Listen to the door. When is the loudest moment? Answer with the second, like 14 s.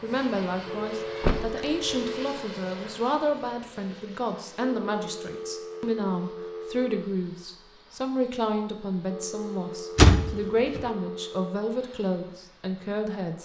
10 s.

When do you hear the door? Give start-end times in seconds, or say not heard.
1.2-1.8, 9.9-10.8.